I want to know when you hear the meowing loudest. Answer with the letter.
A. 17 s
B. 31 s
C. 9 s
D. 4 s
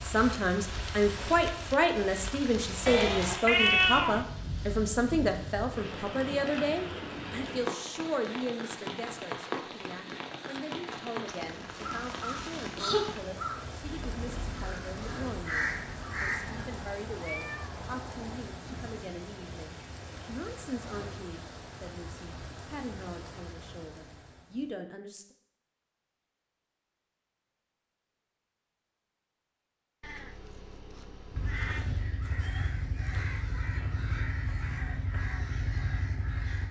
D.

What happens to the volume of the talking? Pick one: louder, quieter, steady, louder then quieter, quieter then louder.
quieter.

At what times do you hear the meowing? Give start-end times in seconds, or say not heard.
2.9-4.2, 16.4-18.4, 30.0-31.9.